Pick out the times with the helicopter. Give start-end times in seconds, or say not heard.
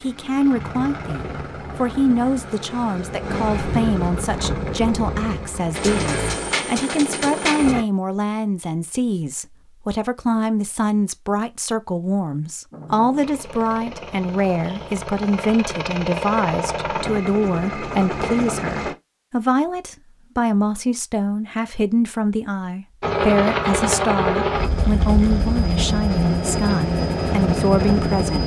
0.0-7.8, 12.7-18.9, 23.0-28.4.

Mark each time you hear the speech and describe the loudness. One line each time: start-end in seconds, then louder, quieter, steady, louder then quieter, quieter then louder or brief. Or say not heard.
0.0-28.4 steady.